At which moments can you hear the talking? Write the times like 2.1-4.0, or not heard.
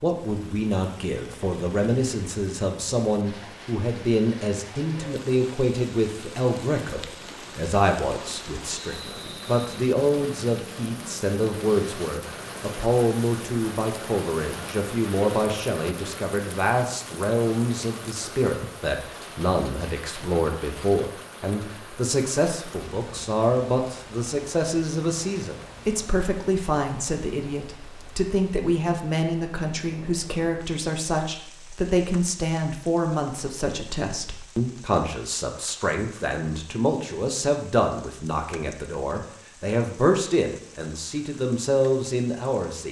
0.0-42.8.